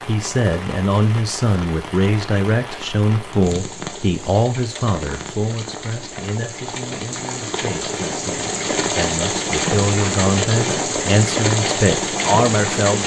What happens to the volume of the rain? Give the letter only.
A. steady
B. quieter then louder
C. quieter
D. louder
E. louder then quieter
D.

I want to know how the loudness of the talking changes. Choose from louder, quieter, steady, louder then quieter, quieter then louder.
quieter then louder.